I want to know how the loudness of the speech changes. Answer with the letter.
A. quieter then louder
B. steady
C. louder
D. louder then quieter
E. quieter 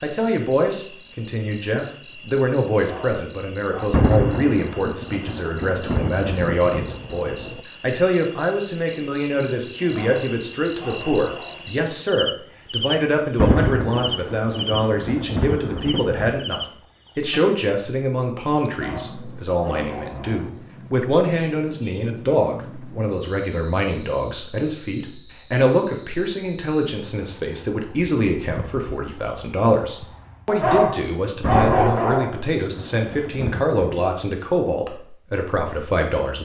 B.